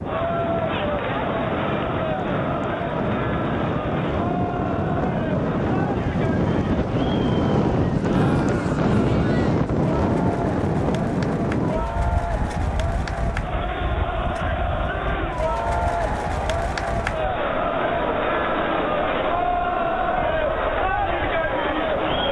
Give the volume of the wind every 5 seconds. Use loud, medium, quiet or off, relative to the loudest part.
medium, loud, medium, quiet, quiet.